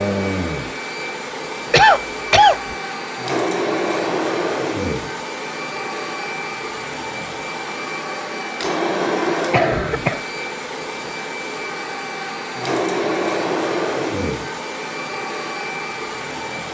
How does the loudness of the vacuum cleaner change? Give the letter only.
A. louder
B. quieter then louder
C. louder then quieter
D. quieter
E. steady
E.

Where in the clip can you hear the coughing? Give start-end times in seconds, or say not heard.
1.7-2.8, 9.5-10.2.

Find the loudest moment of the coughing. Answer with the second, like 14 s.
2 s.